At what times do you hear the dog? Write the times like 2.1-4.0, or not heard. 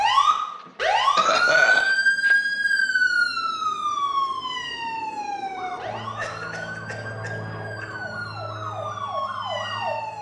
not heard.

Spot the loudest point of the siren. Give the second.
2 s.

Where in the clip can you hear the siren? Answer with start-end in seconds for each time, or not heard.
0.0-10.1.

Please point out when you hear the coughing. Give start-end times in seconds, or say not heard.
0.7-2.4, 6.2-7.8.